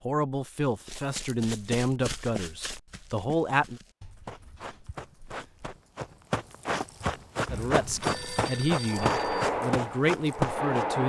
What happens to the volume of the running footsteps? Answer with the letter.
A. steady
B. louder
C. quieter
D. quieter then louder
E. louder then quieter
D.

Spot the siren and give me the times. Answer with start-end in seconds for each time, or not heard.
not heard.